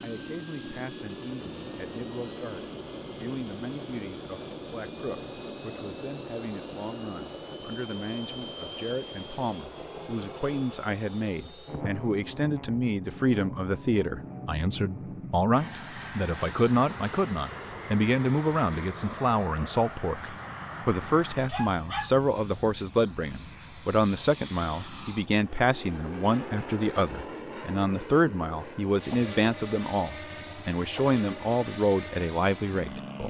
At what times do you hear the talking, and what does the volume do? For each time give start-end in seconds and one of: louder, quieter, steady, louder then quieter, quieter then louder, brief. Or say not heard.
0.0-33.2 louder.